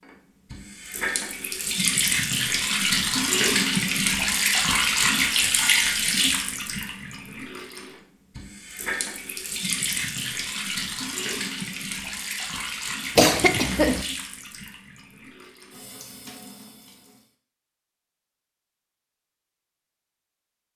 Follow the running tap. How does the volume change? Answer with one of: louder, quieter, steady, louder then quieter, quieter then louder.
quieter.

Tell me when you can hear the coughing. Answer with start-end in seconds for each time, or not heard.
13.2-14.1.